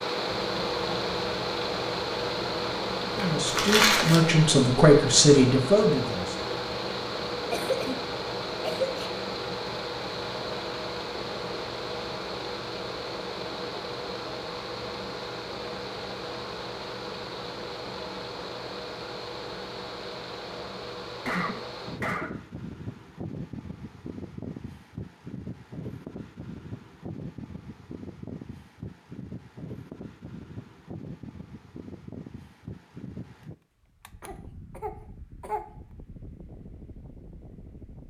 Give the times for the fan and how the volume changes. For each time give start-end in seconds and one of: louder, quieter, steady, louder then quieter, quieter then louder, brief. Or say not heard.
0.0-38.0 quieter.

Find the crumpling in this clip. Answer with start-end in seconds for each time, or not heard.
3.1-4.2.